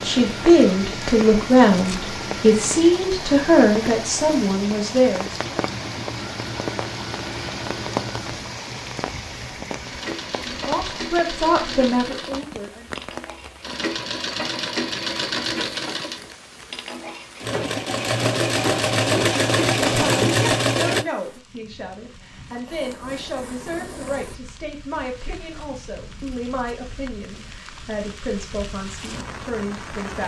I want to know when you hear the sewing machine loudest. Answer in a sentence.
The loudest moment of the sewing machine is at 20 seconds.